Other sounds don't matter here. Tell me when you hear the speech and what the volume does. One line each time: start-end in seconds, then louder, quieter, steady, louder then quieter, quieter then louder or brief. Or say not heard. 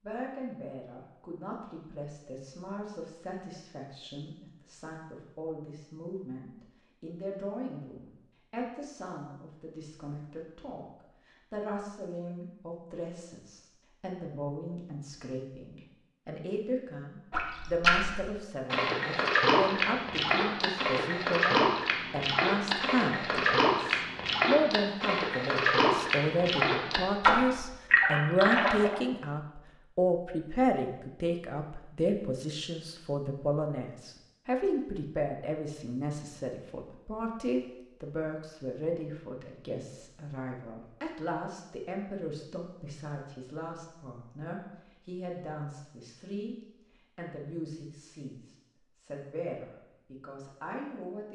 0.0-51.3 louder then quieter.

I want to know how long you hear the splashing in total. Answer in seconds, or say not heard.
12 s.